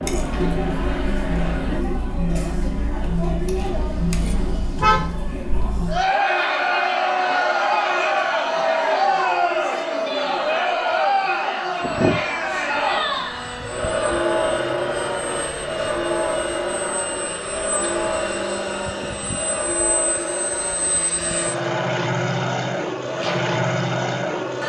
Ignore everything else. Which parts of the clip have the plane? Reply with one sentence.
The plane can be heard from 0.0 to 1.9 s and from 11.8 to 24.6 s.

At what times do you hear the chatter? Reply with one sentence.
The chatter can be heard from 0.0 to 24.6 s.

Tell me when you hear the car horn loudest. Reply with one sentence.
The loudest moment of the car horn is at 5 seconds.